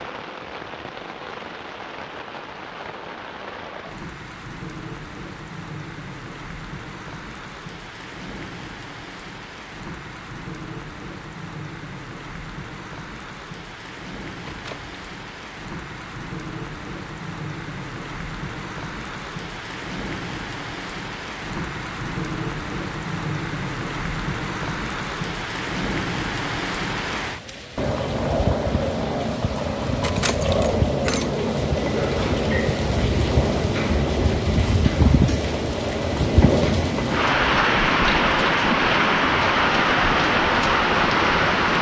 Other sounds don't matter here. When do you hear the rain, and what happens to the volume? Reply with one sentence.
You can hear the rain from 0.0 to 41.7 s, getting louder.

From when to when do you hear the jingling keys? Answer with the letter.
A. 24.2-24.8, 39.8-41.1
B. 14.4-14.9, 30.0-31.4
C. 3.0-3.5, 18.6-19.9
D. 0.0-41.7
B.